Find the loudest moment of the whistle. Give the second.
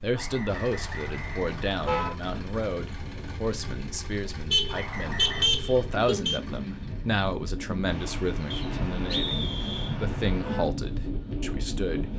9 s.